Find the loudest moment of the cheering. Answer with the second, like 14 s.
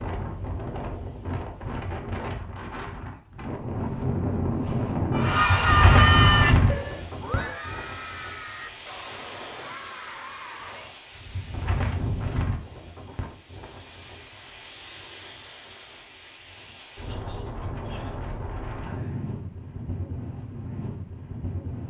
6 s.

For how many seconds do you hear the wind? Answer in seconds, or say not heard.
22 s.